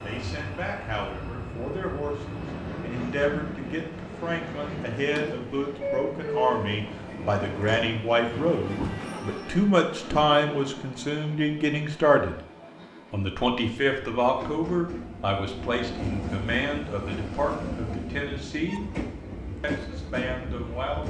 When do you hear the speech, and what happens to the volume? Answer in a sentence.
You can hear the speech from 0.0 to 12.3 s, getting louder; from 13.1 to 18.9 s, getting quieter; and briefly from 19.6 to 21.0 s.